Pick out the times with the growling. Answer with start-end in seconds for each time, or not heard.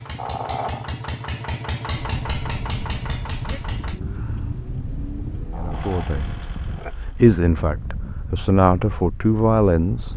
0.1-0.9, 5.5-7.0.